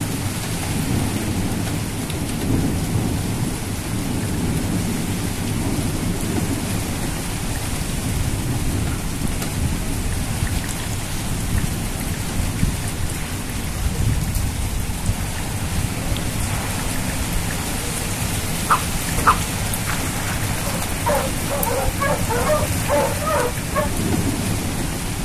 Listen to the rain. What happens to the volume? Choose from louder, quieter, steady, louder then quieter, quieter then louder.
steady.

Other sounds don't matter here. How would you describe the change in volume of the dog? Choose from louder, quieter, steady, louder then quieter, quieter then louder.
quieter then louder.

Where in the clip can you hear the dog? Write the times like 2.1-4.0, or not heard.
18.6-23.9.